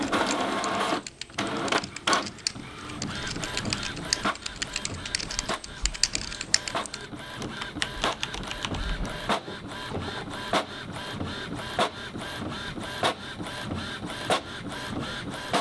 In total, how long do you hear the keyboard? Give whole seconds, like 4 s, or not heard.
9 s.